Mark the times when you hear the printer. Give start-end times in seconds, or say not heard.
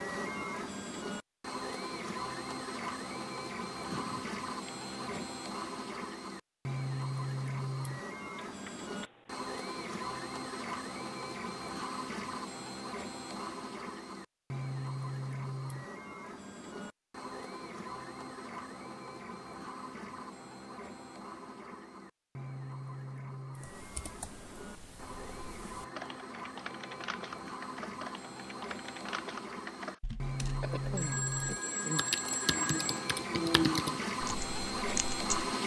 0.0-35.6.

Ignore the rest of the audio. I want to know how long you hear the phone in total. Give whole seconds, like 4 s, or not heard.
3 s.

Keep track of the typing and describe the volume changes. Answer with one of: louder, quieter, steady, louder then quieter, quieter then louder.
louder.